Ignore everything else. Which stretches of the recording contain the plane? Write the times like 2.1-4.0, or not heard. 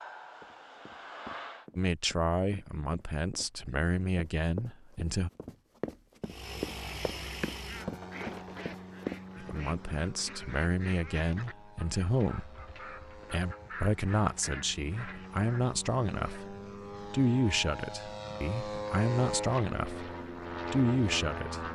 0.0-1.6, 6.2-21.6.